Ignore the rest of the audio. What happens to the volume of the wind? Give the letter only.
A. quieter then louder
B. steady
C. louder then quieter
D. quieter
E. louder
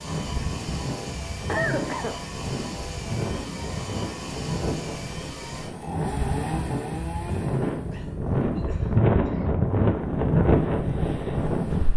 E.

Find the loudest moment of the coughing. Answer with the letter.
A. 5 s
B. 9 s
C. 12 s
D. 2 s
D.